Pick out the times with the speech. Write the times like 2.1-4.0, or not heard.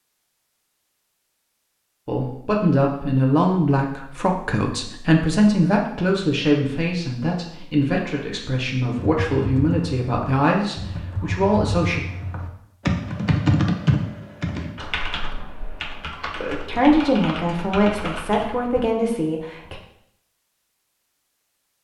2.0-12.0, 16.6-19.8.